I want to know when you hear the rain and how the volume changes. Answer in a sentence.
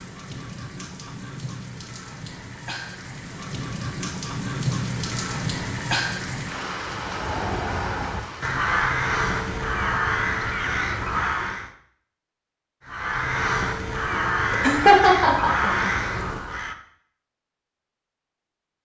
You can hear the rain from 0.0 to 9.8 s, getting louder then quieter.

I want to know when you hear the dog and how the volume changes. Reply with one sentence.
You can't hear the dog here.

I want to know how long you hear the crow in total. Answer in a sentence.
You can hear the crow for 9 seconds altogether.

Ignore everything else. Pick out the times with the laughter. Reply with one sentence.
The laughter can be heard from 14.1 to 15.9 s.